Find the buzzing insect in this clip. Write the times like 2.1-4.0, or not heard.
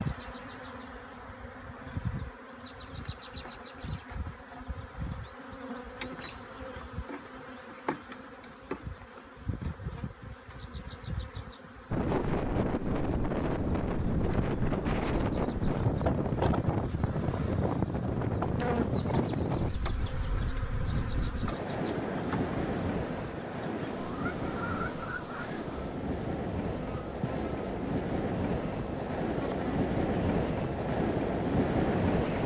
0.0-32.4.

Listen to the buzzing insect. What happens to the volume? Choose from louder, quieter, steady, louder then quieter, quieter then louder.
steady.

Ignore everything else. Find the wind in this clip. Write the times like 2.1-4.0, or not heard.
11.9-32.4.